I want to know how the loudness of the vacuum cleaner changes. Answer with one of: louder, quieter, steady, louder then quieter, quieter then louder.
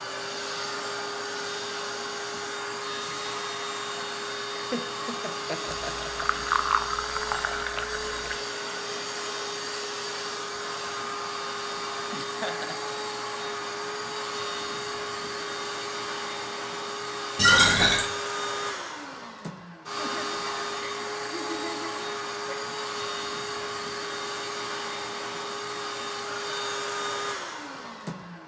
steady.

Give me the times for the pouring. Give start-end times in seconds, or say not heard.
5.8-8.3, 17.4-18.1.